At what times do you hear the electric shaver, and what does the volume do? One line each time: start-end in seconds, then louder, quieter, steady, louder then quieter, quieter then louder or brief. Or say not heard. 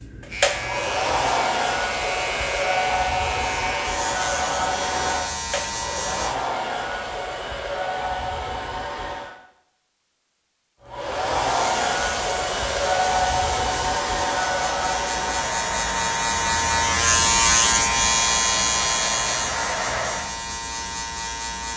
0.1-6.4 steady
11.6-21.7 louder then quieter.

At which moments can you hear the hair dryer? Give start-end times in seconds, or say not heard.
0.0-9.3, 10.8-20.3.